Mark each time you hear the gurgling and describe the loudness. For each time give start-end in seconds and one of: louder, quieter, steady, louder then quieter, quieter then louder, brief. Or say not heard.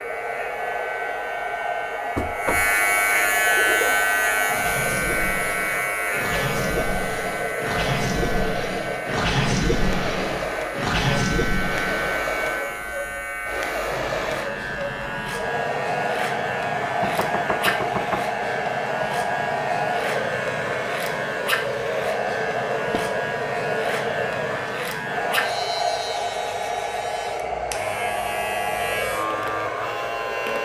3.5-12.1 louder.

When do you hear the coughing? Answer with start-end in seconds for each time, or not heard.
not heard.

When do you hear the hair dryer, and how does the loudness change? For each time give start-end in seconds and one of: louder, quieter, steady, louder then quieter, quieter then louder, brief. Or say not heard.
0.0-30.6 steady.